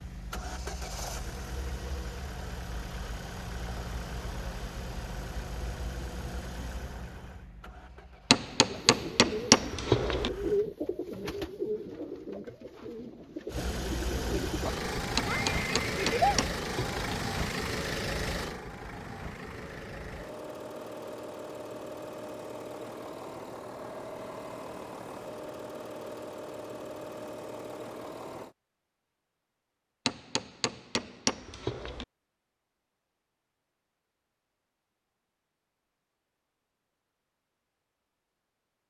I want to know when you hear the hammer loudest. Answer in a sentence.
The loudest moment of the hammer is at 9 seconds.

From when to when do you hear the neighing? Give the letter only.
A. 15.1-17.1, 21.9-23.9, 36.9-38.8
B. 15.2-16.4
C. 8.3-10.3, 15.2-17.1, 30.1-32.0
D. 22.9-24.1
B.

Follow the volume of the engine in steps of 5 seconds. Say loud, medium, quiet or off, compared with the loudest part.
medium, medium, loud, loud, medium, medium, off, off.